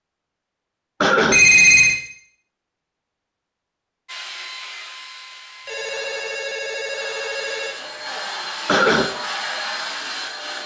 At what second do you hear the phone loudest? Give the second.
2 s.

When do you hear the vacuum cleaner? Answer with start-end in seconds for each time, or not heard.
4.0-10.6.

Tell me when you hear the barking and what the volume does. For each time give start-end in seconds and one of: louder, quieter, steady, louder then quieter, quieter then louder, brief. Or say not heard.
not heard.